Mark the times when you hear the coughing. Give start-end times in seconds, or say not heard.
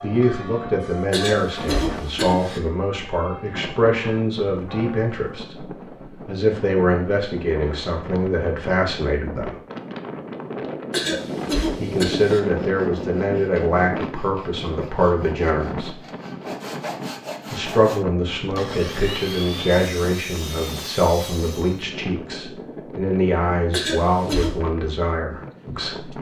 1.1-2.6, 10.9-12.4, 23.7-24.6.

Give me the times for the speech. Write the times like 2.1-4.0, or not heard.
0.0-9.6, 11.8-16.0, 17.5-26.1.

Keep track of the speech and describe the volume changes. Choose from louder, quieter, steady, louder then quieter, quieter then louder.
steady.